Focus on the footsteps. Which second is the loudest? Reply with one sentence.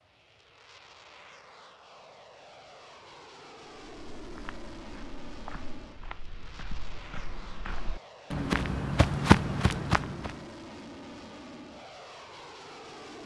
The loudest moment of the footsteps is at 9 seconds.